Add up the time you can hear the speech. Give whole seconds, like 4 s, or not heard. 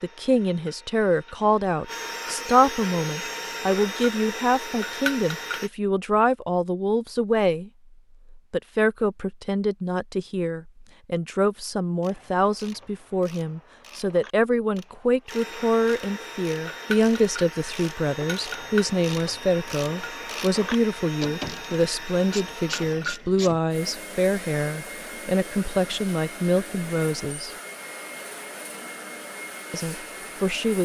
28 s.